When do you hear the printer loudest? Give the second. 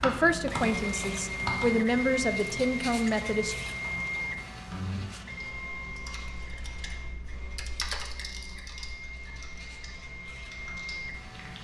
2 s.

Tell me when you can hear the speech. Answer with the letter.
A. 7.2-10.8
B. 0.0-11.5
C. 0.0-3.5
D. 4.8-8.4
C.